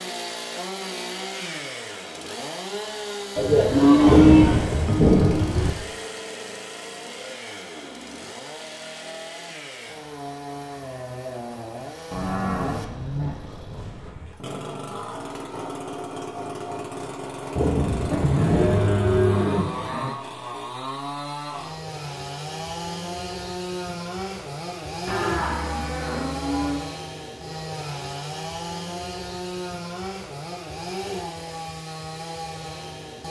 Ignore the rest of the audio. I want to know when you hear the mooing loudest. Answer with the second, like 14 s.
4 s.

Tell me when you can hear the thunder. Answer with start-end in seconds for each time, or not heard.
4.0-5.7, 17.6-19.2.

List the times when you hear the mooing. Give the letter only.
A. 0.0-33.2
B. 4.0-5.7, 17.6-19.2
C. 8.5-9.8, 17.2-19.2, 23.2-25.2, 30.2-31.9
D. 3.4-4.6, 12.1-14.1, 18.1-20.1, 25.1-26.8
D.